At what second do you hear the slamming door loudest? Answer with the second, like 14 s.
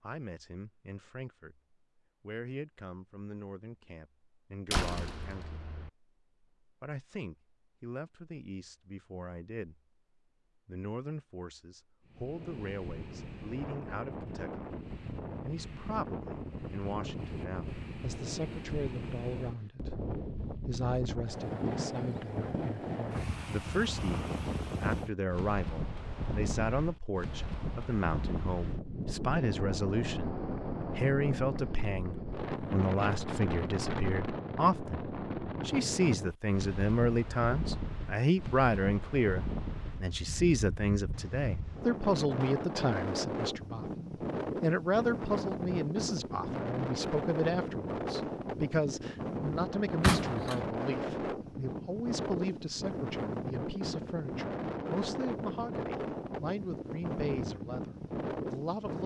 50 s.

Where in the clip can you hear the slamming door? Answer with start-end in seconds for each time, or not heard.
4.7-5.9, 50.0-50.7.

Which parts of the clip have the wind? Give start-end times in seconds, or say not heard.
12.1-59.0.